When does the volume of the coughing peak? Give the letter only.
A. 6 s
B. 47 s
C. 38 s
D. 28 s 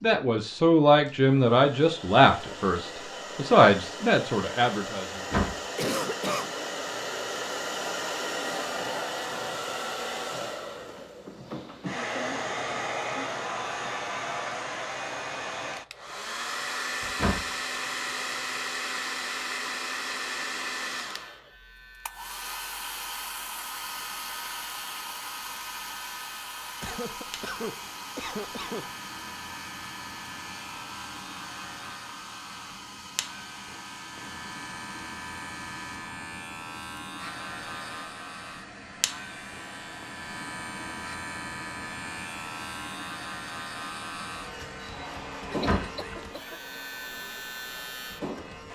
A.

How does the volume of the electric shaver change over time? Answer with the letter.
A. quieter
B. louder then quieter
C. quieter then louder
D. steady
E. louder
E.